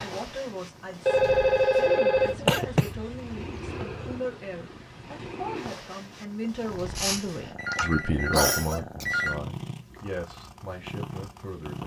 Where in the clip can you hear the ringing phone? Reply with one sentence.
The ringing phone can be heard from 1.1 to 2.4 s and from 7.5 to 9.4 s.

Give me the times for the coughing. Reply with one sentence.
The coughing can be heard from 2.1 to 4.2 s and from 7.0 to 9.1 s.